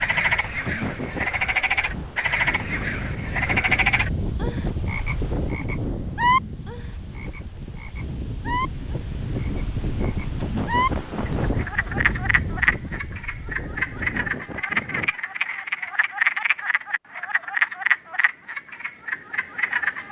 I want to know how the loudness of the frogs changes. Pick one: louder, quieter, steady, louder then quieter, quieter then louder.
steady.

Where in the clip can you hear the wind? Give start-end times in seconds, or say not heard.
0.0-14.4.